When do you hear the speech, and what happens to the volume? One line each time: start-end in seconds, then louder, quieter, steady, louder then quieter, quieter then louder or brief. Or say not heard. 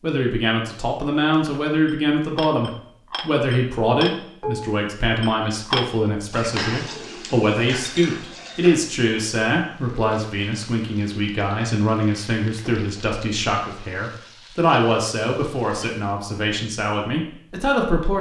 0.0-18.1 steady.